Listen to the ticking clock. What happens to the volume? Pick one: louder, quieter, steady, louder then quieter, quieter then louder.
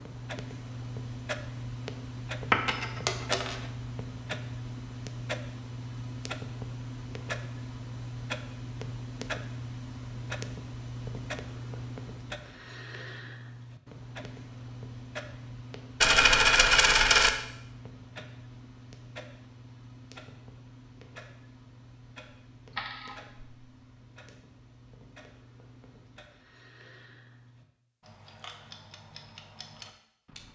quieter.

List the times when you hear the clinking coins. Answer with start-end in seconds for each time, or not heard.
2.5-3.6, 16.0-17.3, 22.7-23.4.